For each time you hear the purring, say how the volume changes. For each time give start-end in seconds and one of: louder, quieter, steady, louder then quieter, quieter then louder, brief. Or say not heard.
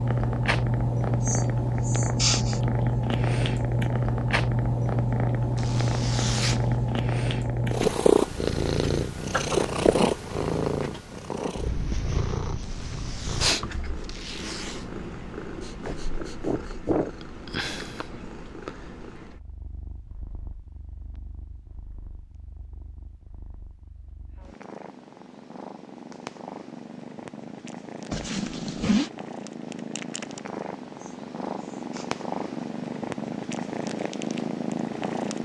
0.0-35.4 quieter then louder.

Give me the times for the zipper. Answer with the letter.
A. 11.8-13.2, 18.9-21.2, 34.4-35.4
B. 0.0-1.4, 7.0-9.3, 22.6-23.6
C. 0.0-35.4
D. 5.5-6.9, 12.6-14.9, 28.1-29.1
D.